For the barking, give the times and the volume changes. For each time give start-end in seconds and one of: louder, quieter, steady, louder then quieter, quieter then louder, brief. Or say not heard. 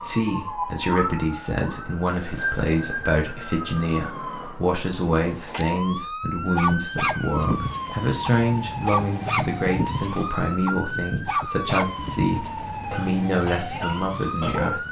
6.5-14.8 quieter.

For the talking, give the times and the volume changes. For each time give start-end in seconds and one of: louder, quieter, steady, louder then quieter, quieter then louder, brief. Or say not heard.
0.0-14.8 steady.